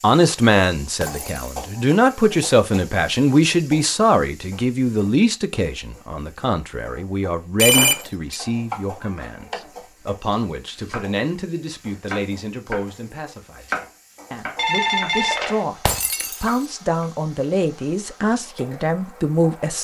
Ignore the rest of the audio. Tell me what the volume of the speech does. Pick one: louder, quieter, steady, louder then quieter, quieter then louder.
quieter then louder.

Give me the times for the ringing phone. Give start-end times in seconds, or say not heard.
7.6-8.3, 14.6-15.7.